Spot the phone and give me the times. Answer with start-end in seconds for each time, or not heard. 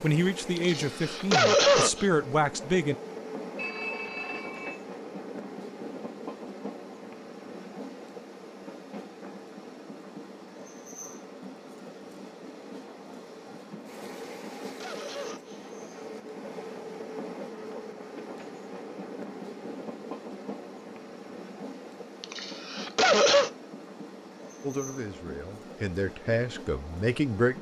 3.5-4.8.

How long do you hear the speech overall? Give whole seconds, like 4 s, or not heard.
6 s.